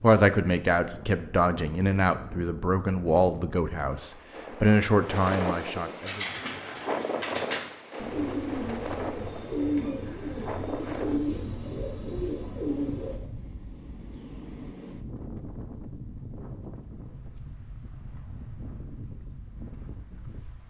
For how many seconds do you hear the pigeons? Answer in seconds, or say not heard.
7 s.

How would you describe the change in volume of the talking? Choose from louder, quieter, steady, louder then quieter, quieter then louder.
steady.